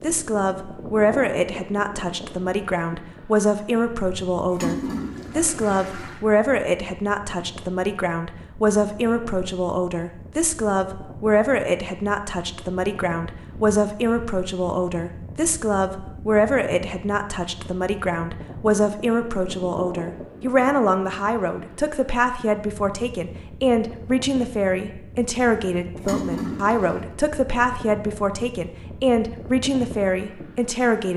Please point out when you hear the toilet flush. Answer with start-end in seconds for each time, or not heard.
4.5-6.2, 25.9-27.0.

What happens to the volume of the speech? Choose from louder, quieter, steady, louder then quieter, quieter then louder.
steady.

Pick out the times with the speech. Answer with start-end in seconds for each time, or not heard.
0.0-31.1.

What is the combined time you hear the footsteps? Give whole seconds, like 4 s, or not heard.
not heard.